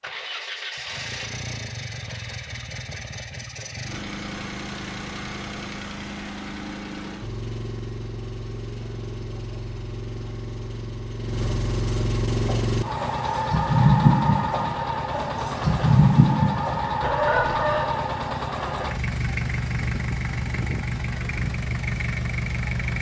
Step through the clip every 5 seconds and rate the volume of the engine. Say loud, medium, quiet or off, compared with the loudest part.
medium, medium, loud, loud, loud.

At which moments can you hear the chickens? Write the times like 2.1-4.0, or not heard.
12.3-17.9.